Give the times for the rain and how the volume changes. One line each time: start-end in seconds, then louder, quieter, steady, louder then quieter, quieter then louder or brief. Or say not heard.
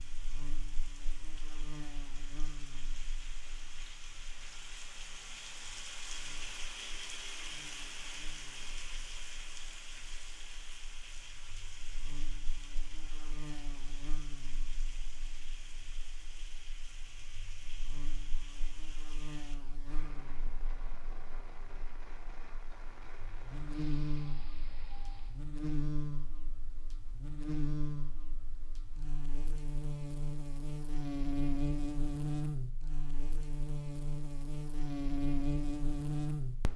0.0-25.4 louder then quieter.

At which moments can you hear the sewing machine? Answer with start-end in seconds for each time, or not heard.
not heard.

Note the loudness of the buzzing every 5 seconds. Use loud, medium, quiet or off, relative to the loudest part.
quiet, quiet, quiet, quiet, medium, medium, loud, loud.